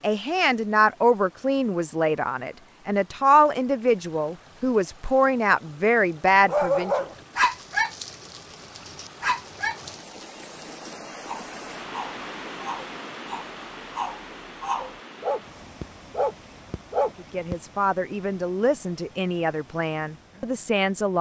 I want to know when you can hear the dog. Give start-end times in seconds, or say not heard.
6.5-17.6.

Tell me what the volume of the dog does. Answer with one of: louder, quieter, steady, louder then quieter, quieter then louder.
quieter then louder.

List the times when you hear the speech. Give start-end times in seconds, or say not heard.
0.0-7.0, 17.1-21.1.